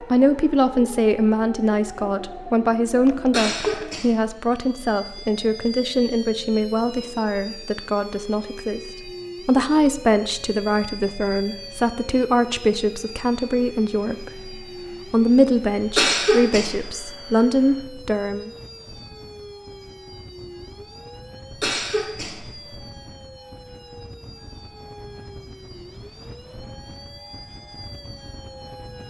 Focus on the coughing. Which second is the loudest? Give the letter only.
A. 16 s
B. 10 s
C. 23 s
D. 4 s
A.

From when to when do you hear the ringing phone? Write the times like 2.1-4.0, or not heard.
not heard.